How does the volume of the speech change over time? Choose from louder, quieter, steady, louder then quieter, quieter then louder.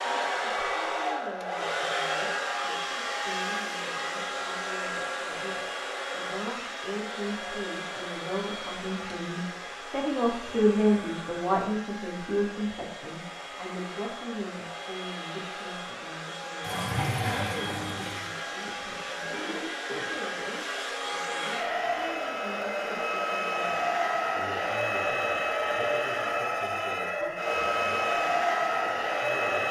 louder then quieter.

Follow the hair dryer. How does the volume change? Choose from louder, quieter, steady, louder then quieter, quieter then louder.
quieter then louder.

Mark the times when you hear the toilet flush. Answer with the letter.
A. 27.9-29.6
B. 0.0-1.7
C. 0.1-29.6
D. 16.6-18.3
D.